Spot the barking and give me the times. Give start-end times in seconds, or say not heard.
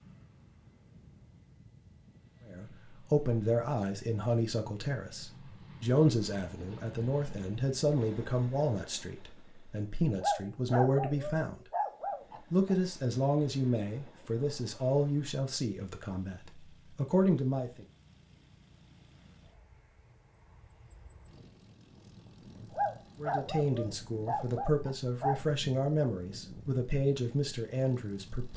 10.2-12.8, 22.7-25.4.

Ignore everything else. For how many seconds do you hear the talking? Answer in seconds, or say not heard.
20 s.